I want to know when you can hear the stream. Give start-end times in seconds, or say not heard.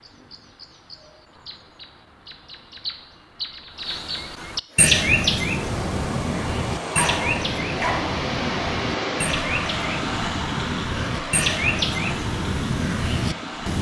4.7-13.7.